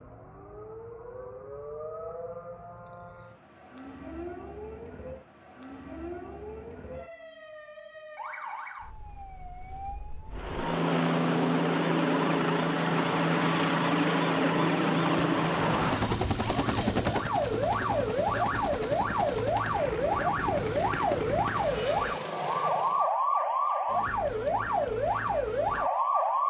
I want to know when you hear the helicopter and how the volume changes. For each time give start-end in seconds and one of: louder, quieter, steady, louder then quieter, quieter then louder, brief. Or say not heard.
10.3-23.1 quieter.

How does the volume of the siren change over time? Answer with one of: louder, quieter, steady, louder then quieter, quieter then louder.
louder.